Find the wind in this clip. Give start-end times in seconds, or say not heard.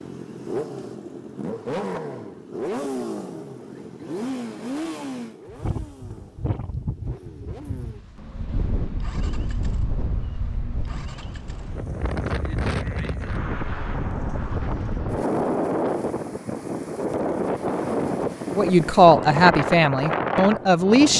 5.5-21.1.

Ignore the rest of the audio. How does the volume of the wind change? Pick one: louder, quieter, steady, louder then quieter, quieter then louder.
louder.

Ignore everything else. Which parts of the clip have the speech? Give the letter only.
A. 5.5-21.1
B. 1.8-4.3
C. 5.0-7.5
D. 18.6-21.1
D.